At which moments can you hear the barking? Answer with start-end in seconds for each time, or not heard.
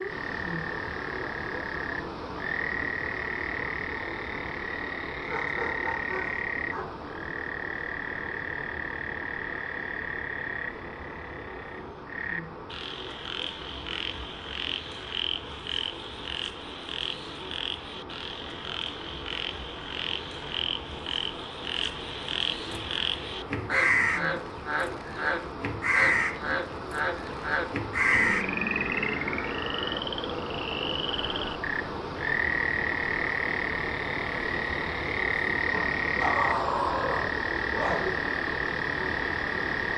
5.2-6.8, 35.7-38.3.